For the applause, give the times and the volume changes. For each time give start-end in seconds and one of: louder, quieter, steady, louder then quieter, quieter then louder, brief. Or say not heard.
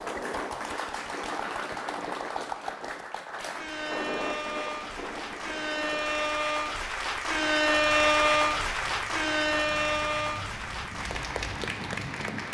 0.0-12.4 louder then quieter.